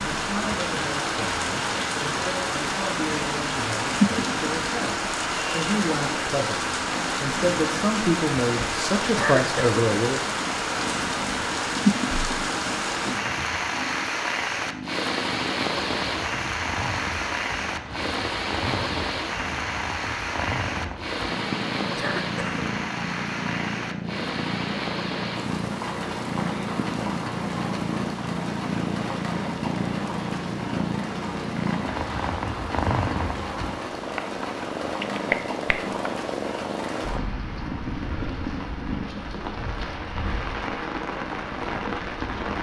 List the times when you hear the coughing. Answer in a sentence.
The coughing can be heard from 9.2 to 9.8 s and from 21.9 to 22.6 s.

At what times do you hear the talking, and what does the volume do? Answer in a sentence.
The talking can be heard from 0.0 to 10.2 s, getting louder.